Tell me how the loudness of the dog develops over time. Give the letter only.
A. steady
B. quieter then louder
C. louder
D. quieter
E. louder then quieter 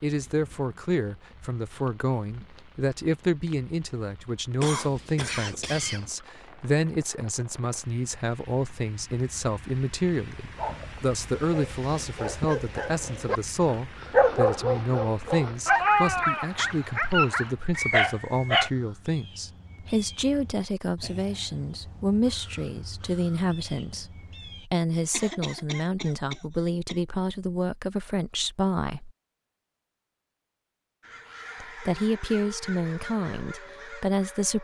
C.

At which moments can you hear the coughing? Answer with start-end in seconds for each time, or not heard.
4.6-6.2, 25.1-27.0.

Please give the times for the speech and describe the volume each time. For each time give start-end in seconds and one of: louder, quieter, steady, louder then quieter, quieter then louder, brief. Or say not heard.
0.0-29.1 steady
31.6-34.5 brief.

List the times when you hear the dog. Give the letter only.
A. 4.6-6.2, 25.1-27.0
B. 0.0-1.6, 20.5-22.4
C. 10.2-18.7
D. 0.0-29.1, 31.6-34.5
C.